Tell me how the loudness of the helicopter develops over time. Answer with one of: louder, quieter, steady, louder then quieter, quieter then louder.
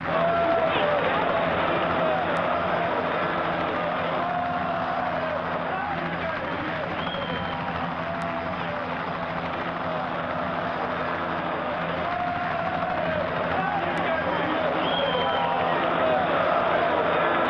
steady.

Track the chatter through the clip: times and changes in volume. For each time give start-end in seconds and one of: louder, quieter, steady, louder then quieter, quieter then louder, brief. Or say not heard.
0.0-17.4 quieter then louder.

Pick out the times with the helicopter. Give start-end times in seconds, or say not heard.
0.0-17.4.